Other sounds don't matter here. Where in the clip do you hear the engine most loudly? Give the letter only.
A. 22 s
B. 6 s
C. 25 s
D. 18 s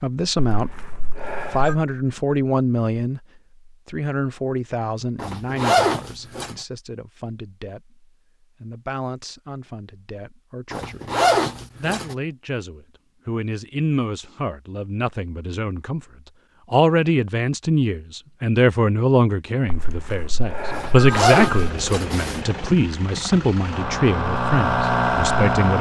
C.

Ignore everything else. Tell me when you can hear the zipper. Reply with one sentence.
You can hear the zipper from 5.2 to 6.5 s, from 10.7 to 12.2 s and from 20.7 to 22.4 s.